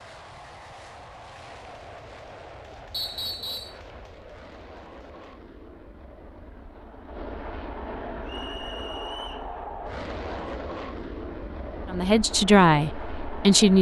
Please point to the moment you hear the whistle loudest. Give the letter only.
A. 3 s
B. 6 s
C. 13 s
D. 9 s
A.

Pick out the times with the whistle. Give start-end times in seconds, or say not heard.
2.9-3.8, 8.2-9.4.